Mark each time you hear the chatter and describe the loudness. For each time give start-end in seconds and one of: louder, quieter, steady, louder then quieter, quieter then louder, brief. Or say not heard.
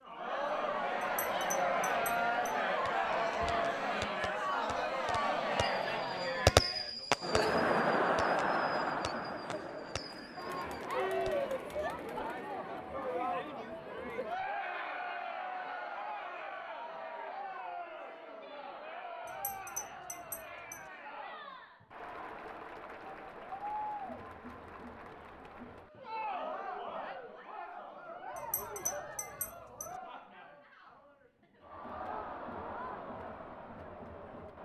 0.0-34.6 quieter.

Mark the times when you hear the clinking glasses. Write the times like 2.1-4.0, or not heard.
1.0-2.6, 19.2-20.9, 28.4-29.9.